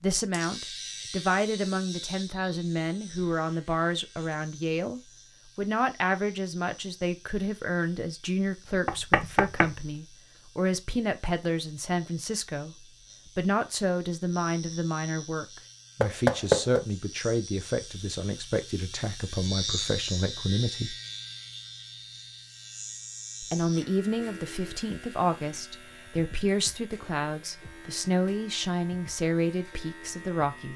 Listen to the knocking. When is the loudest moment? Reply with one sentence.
The volume of the knocking peaks at 16 seconds.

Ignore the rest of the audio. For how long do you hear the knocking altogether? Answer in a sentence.
You can hear the knocking for 2 seconds altogether.